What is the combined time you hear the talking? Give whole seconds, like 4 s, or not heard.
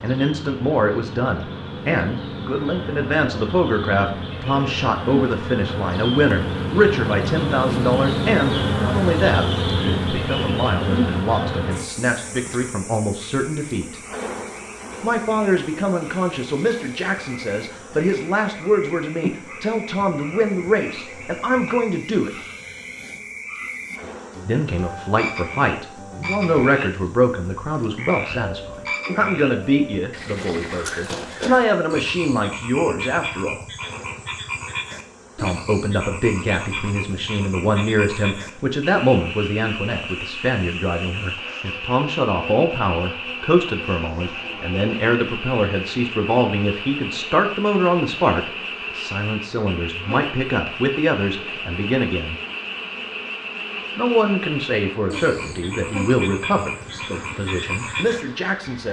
52 s.